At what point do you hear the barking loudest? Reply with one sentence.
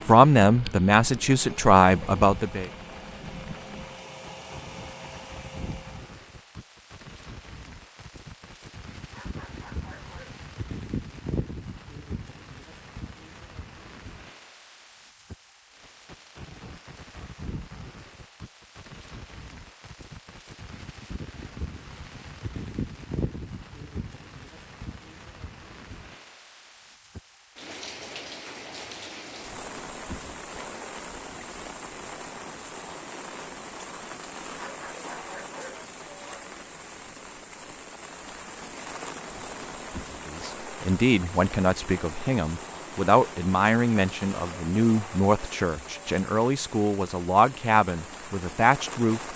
The loudest moment of the barking is at 35 seconds.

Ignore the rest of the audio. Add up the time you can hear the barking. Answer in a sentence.
You can hear the barking for 3 seconds altogether.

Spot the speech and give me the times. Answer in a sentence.
You can hear the speech from 0.1 to 2.6 s and from 40.2 to 49.3 s.